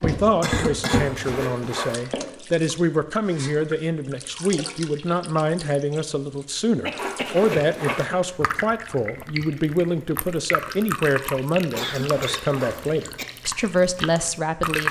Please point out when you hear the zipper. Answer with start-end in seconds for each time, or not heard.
0.8-2.0, 7.0-8.1, 11.7-12.8.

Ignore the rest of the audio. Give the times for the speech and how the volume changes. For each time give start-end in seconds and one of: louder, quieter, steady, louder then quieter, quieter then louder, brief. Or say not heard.
0.0-14.8 steady.